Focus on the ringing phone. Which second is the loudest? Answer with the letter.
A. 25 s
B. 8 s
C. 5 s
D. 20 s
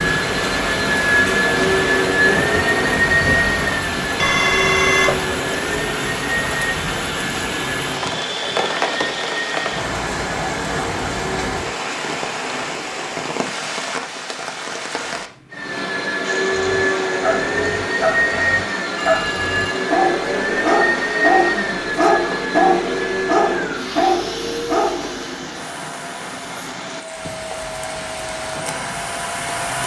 C.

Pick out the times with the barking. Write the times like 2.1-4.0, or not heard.
16.6-25.2.